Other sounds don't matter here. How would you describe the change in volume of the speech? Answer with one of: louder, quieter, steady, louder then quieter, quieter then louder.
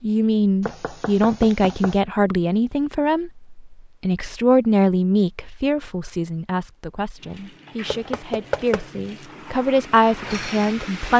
quieter then louder.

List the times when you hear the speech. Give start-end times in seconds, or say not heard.
0.0-11.1.